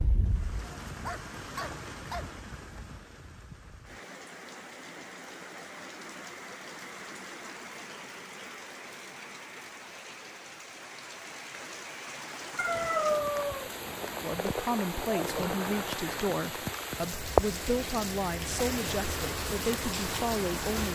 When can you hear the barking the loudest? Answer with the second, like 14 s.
13 s.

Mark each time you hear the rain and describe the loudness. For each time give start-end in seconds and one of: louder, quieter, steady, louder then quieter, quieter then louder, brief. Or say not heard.
0.0-20.9 louder.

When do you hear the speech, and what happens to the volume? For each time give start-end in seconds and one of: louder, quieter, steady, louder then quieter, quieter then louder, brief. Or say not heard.
14.2-20.9 steady.